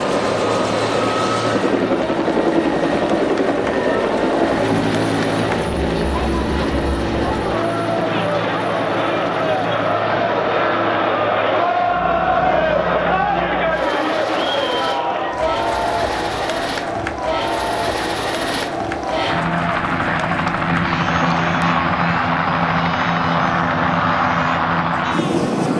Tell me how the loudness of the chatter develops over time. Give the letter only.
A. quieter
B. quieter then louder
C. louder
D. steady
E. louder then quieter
E.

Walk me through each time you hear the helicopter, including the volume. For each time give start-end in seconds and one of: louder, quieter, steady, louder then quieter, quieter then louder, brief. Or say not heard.
0.0-25.7 quieter then louder.